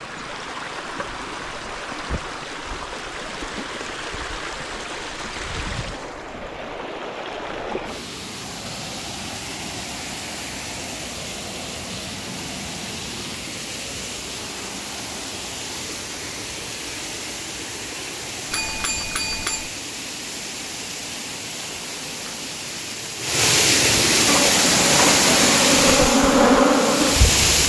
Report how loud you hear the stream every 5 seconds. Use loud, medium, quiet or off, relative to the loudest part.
quiet, quiet, quiet, quiet, loud, loud.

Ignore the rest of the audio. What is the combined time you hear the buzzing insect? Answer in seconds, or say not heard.
3 s.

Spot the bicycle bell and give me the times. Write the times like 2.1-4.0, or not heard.
18.5-19.7.